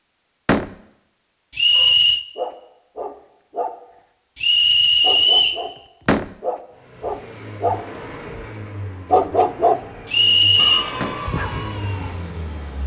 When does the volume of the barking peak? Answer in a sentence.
The loudest moment of the barking is at 9 seconds.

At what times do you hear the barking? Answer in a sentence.
You can hear the barking from 1.7 to 3.8 s, from 4.6 to 5.8 s, from 6.4 to 7.8 s, from 8.7 to 9.8 s and from 10.6 to 12.2 s.